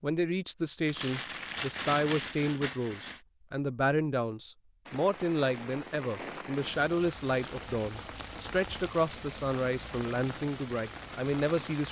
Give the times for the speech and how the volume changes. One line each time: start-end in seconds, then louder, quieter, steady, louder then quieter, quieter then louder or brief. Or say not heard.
0.0-11.8 steady.